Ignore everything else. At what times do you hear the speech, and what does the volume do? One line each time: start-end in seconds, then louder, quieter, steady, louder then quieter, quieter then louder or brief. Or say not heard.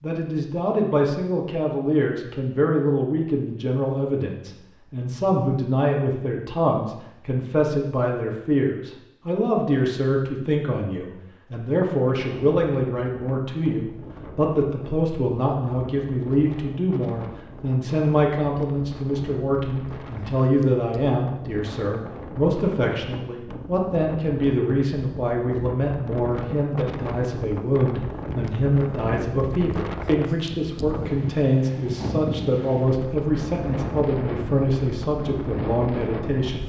0.0-36.6 steady.